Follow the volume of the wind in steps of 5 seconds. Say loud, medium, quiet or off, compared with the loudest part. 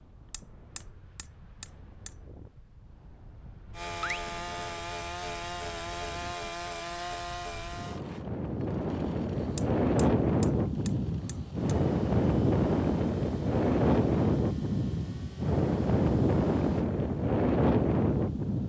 quiet, medium, loud, loud.